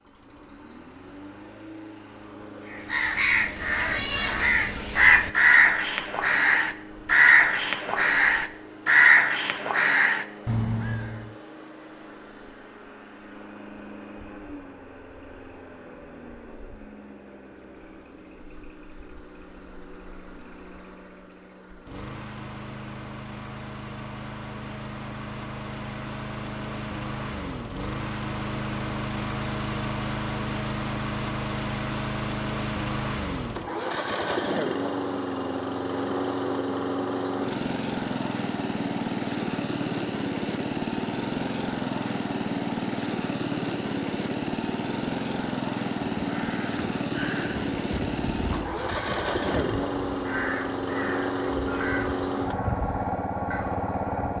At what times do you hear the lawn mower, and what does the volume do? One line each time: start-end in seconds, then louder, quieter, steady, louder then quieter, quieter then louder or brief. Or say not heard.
0.0-54.3 louder.